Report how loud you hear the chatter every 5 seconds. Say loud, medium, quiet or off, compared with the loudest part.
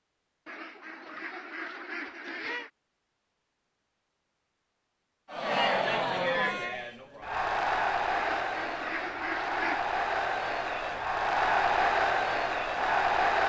off, loud, loud.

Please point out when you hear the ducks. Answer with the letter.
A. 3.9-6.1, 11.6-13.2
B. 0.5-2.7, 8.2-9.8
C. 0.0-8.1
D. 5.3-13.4
B.